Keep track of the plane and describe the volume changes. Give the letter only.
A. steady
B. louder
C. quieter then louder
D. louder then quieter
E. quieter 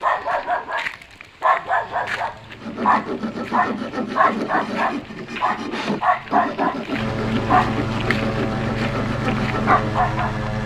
B.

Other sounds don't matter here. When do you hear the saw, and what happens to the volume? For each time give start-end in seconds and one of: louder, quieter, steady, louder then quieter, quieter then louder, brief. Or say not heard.
2.5-9.9 steady.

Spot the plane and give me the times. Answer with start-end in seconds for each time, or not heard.
1.6-10.6.